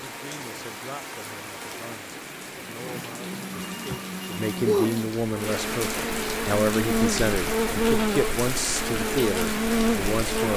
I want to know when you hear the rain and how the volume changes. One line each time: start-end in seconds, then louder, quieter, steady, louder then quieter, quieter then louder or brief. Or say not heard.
0.0-10.5 louder.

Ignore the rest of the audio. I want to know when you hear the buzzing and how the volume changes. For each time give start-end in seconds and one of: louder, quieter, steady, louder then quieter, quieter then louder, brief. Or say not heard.
0.0-10.5 louder.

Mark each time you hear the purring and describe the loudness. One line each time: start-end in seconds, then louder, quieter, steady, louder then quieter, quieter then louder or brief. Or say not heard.
not heard.